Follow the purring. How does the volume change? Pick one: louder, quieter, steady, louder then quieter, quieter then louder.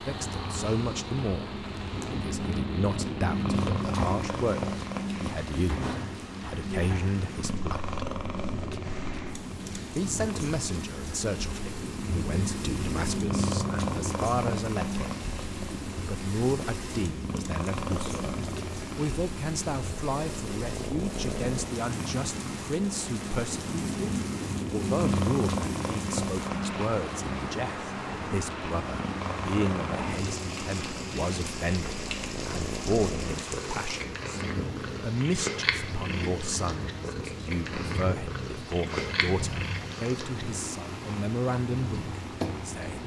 steady.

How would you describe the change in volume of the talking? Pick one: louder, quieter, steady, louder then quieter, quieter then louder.
steady.